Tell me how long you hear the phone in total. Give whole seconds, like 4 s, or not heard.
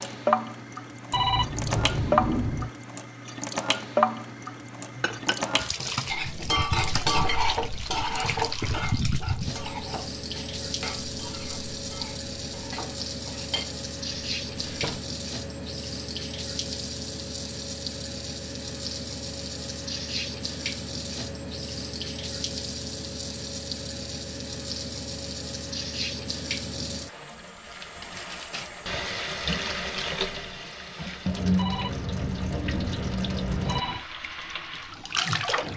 4 s.